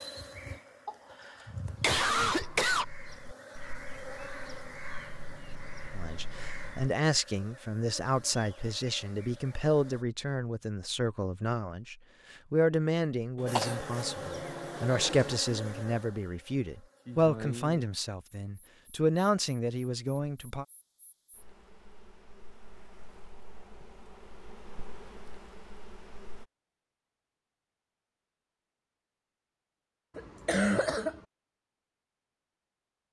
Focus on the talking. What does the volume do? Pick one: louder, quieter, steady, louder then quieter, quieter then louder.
steady.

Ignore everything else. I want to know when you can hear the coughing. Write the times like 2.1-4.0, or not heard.
0.8-2.9, 13.3-15.4, 30.1-31.2.